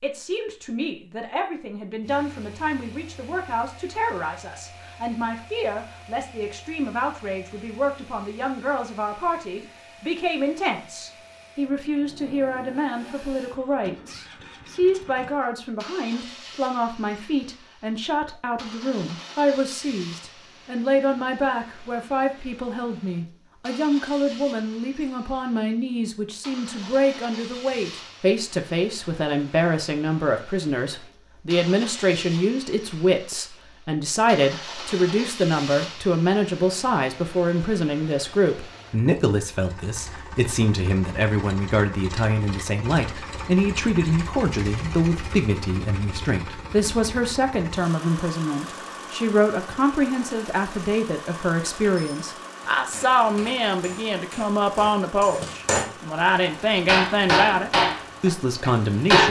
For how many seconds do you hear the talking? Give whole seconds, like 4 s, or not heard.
59 s.